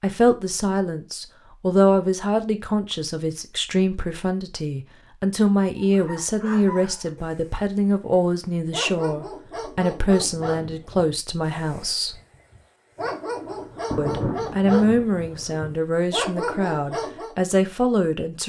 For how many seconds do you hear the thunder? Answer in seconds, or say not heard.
3 s.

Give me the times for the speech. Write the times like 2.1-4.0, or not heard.
0.0-12.2, 13.9-18.4.